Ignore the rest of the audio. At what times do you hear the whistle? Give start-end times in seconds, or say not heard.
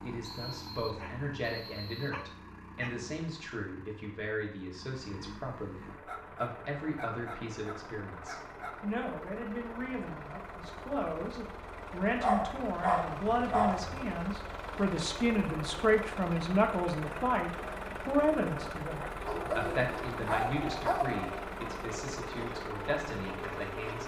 0.2-2.2.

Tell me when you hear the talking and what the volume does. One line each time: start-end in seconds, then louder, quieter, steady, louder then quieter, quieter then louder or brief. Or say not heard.
0.0-24.0 louder then quieter.